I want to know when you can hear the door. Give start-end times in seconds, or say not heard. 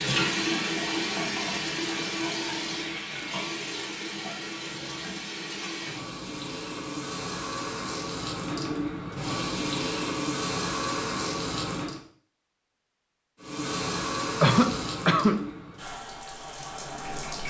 not heard.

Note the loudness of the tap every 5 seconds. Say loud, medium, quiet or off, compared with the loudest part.
loud, loud, loud, medium.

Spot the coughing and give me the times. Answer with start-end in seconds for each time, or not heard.
14.4-15.4.